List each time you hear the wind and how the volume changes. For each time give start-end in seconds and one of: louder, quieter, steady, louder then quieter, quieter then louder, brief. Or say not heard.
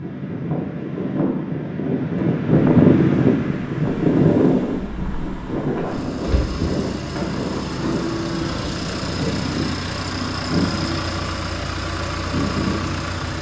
0.0-13.2 quieter.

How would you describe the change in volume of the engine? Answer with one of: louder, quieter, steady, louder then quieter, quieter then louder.
louder.